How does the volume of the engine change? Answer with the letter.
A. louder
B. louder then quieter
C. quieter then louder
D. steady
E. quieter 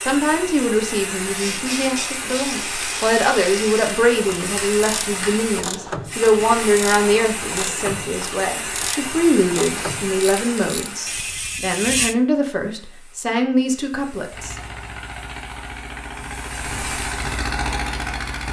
A.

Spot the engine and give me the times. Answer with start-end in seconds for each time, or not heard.
14.3-18.4.